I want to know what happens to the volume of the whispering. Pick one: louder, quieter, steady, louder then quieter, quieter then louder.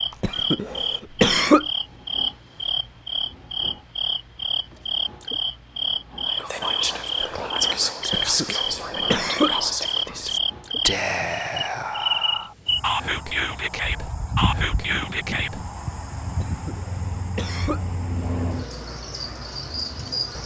steady.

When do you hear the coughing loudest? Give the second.
1 s.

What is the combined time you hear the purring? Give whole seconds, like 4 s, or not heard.
not heard.